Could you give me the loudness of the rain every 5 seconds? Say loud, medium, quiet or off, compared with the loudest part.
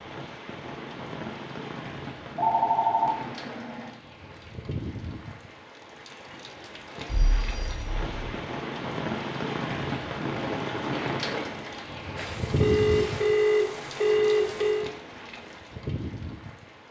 medium, loud, loud, medium.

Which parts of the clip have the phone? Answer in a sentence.
You can hear the phone from 2.2 to 3.9 s, from 7.0 to 8.3 s and from 12.2 to 14.8 s.